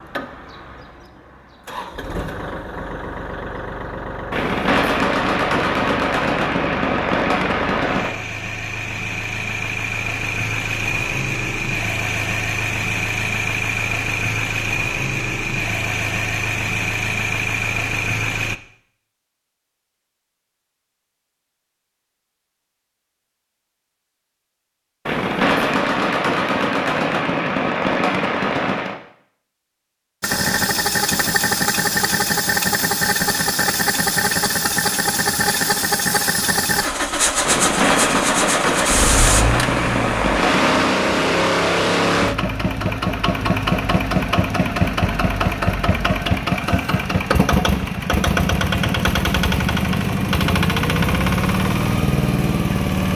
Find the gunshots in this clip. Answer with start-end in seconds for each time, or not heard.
4.3-8.2, 25.1-28.9, 37.4-41.0.